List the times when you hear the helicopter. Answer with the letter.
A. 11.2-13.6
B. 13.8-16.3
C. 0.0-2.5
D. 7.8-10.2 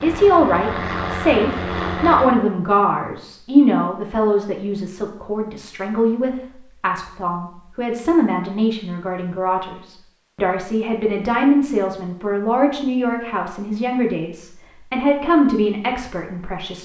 C.